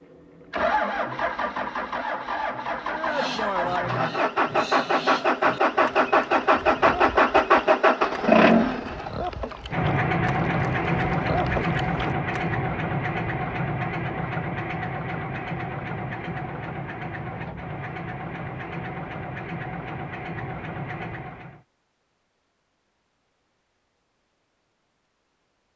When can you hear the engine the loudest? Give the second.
8 s.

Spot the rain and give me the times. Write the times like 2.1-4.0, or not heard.
not heard.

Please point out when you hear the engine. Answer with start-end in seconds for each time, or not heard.
0.0-21.6.